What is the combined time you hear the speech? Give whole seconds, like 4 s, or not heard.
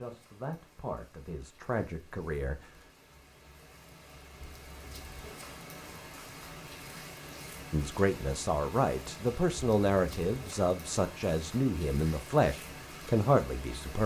9 s.